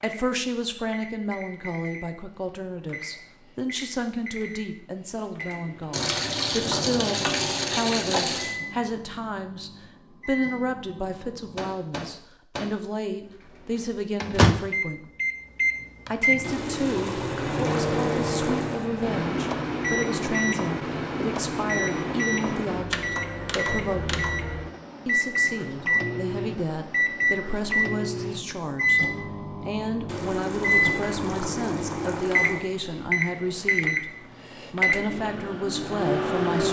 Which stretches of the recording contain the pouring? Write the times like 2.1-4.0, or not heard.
5.9-8.6, 16.4-18.9, 30.1-32.6.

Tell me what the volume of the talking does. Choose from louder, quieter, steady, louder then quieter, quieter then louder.
steady.